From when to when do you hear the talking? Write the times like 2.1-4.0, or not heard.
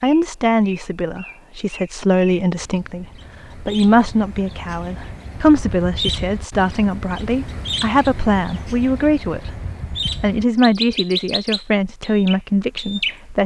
0.0-9.5, 10.2-13.4.